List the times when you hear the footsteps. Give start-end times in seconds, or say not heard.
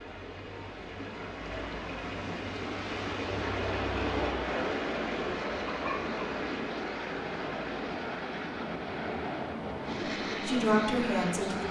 not heard.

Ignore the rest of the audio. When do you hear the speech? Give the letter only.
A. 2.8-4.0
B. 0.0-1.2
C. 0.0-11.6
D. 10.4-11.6
D.